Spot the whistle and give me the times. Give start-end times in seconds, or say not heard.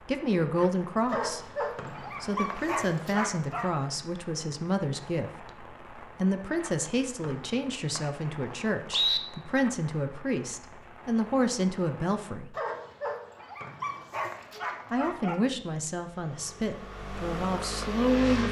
1.8-2.6, 7.2-9.2, 13.6-14.9.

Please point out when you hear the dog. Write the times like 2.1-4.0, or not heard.
1.1-3.6, 12.5-15.4.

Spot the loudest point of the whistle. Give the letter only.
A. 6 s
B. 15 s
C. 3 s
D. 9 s
D.